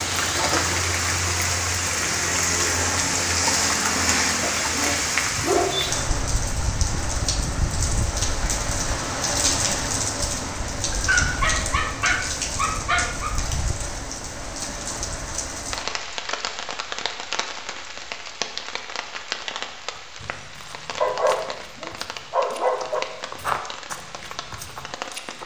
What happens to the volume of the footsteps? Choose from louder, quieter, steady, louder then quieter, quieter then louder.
louder then quieter.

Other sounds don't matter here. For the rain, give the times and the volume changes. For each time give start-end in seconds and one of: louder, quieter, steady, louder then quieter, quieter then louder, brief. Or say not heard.
0.0-25.4 quieter.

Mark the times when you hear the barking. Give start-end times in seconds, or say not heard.
4.4-6.0, 10.9-13.3, 21.0-23.0.